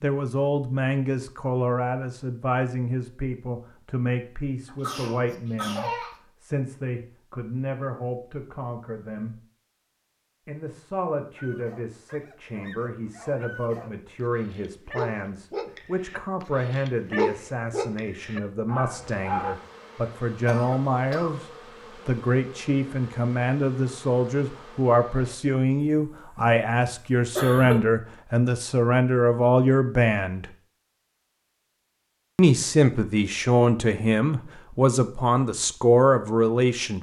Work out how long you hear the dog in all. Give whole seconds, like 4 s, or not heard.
8 s.